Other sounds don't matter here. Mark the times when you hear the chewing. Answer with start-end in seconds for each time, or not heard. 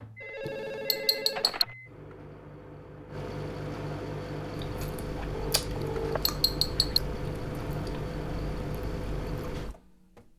4.5-9.8.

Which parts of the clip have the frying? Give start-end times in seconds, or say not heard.
not heard.